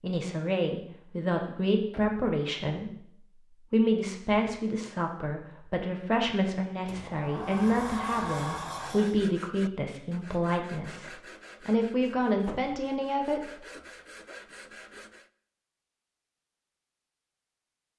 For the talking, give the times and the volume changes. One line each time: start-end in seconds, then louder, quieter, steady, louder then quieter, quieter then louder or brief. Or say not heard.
0.0-13.6 steady.